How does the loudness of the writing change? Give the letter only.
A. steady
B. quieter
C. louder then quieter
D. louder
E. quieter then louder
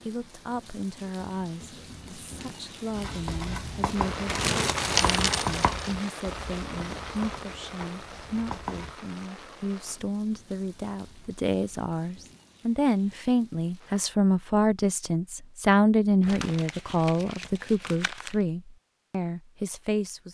B.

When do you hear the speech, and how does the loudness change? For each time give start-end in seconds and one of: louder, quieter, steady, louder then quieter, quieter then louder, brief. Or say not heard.
0.1-20.2 louder.